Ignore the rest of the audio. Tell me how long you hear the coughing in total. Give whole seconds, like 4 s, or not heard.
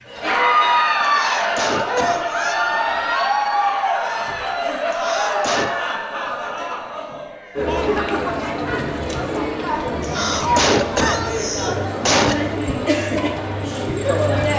5 s.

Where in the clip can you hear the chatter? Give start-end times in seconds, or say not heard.
0.0-14.5.